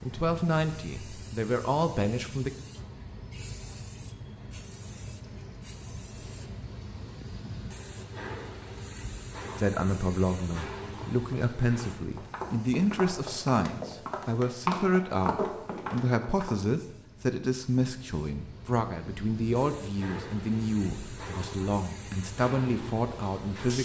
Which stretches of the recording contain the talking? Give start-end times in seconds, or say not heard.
0.0-2.5, 9.6-23.7.